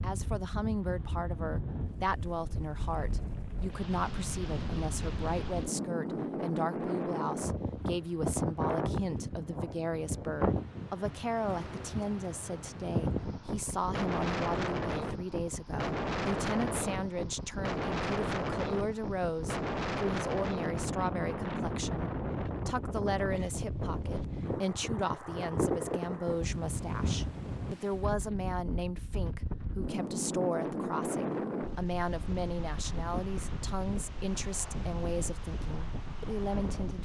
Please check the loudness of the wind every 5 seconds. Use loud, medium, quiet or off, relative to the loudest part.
medium, loud, loud, loud, loud, loud, loud, medium.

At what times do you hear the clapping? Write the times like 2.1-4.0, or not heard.
not heard.